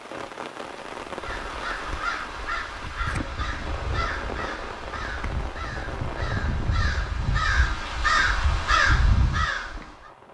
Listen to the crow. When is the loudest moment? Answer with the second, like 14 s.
9 s.